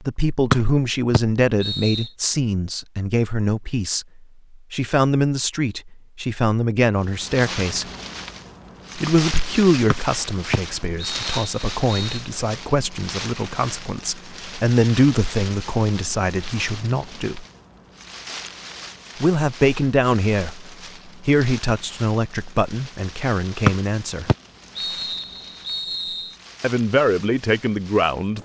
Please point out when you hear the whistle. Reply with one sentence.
You can hear the whistle from 0.5 to 2.1 s, from 9.9 to 12.2 s and from 23.6 to 26.4 s.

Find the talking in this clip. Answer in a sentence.
The talking can be heard from 0.0 to 7.8 s, from 8.9 to 17.4 s, from 19.2 to 24.3 s and from 26.6 to 28.4 s.